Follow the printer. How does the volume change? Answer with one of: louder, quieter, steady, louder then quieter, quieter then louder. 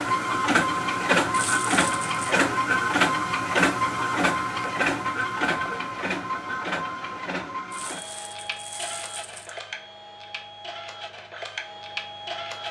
quieter.